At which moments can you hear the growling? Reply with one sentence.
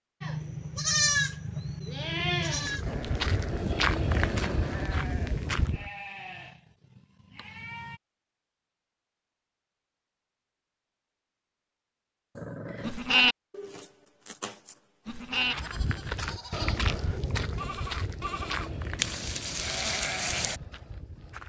The growling can be heard from 2.9 to 4.7 s and from 12.3 to 12.9 s.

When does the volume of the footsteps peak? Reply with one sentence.
The volume of the footsteps peaks at 4 seconds.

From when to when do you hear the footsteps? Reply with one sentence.
You can hear the footsteps from 2.5 to 5.9 s and from 15.3 to 21.4 s.